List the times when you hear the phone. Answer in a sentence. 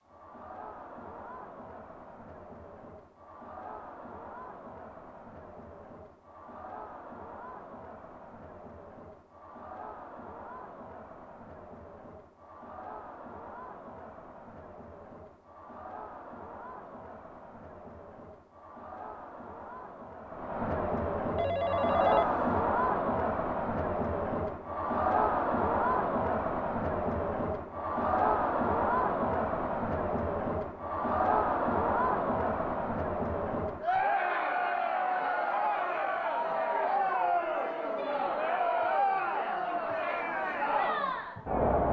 The phone can be heard from 21.4 to 22.6 s.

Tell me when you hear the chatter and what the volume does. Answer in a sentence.
You can hear the chatter from 0.0 to 41.8 s, getting louder.